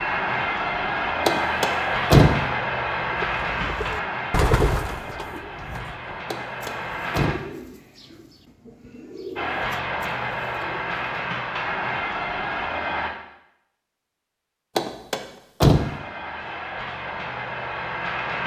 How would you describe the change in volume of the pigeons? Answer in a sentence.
The volume of the pigeons goes down.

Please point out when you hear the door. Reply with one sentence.
You can hear the door from 1.2 to 2.4 s, from 6.3 to 7.4 s and from 14.8 to 15.9 s.